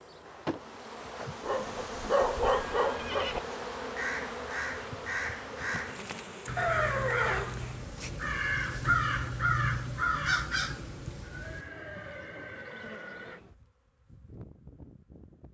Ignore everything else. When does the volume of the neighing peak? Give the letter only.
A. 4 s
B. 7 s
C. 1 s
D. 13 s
B.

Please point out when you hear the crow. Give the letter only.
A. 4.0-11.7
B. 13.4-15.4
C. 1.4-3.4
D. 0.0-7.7
A.